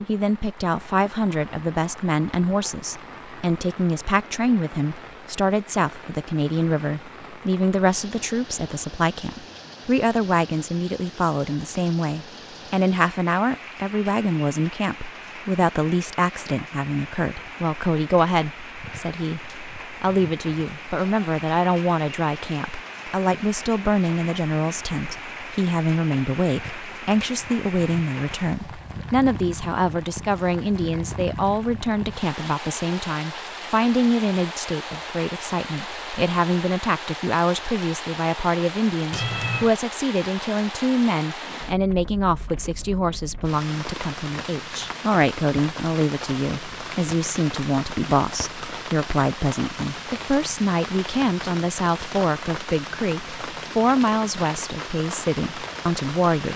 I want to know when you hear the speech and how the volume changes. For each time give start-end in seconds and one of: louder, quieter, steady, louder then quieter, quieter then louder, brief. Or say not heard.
0.1-56.5 steady.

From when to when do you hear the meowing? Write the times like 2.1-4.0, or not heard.
39.1-39.8.